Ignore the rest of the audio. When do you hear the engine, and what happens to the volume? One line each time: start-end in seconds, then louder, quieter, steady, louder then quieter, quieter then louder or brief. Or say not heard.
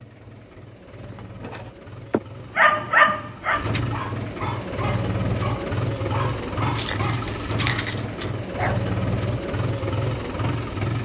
0.0-10.9 louder.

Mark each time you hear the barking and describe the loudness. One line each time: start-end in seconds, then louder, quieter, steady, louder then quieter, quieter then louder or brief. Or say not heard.
2.5-7.8 quieter
8.5-8.9 brief.